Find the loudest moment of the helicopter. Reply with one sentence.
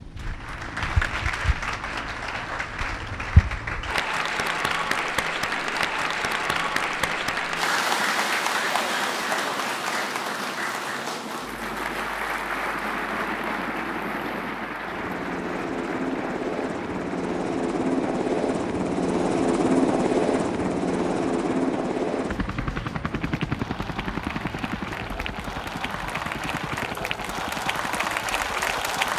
The loudest moment of the helicopter is at 20 seconds.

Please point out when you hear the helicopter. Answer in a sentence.
The helicopter can be heard from 0.0 to 29.1 s.